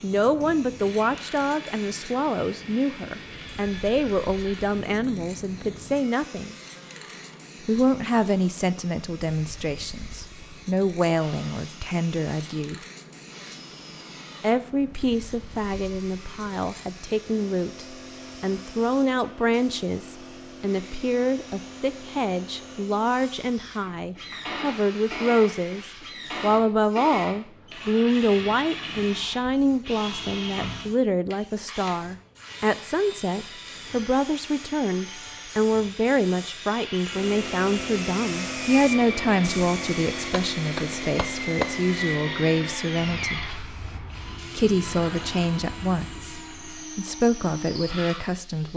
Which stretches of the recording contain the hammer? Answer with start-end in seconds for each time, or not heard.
40.3-41.8.